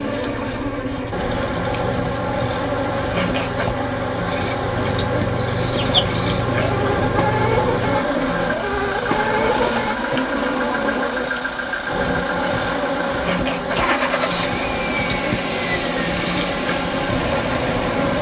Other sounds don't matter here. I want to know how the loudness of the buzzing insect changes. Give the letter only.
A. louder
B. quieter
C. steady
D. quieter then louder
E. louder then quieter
C.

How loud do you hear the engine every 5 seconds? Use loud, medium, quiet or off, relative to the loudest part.
medium, loud, loud, loud.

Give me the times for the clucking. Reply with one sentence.
The clucking can be heard from 5.6 to 11.2 s.